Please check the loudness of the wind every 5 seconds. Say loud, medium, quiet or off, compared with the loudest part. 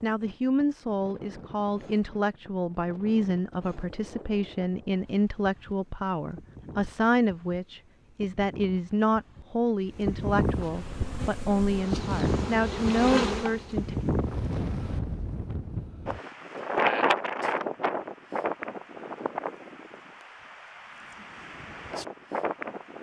quiet, quiet, loud, loud, medium.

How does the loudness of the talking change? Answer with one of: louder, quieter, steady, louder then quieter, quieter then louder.
steady.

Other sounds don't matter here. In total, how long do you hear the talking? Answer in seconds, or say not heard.
14 s.